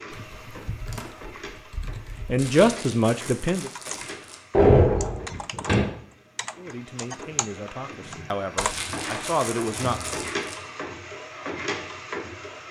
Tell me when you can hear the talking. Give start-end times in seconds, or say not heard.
2.2-3.7, 6.5-10.0.